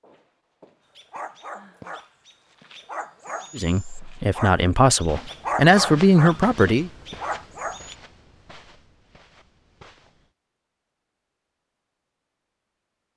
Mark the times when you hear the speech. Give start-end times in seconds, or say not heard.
3.5-6.9.